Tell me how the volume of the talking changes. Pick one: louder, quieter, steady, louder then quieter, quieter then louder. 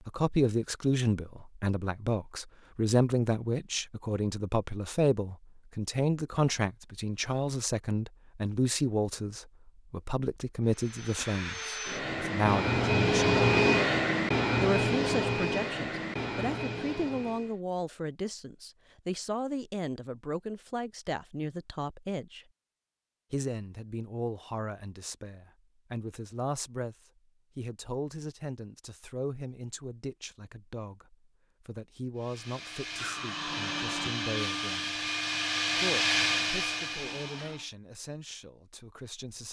quieter.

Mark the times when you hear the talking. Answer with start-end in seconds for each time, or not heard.
0.1-13.4, 14.6-22.4, 23.3-26.9, 27.6-35.0, 35.8-39.4.